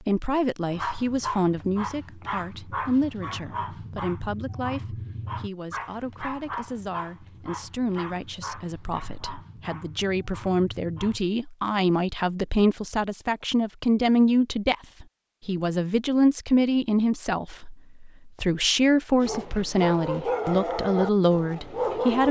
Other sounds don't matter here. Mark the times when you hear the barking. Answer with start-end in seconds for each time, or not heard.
0.7-11.2, 19.2-22.2.